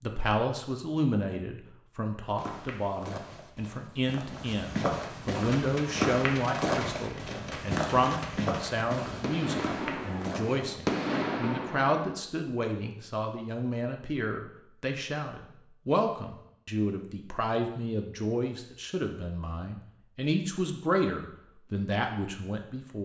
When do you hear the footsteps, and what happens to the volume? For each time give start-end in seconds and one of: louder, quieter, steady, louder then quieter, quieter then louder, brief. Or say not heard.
2.4-10.7 louder then quieter.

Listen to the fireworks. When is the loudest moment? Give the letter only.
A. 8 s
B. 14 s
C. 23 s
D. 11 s
D.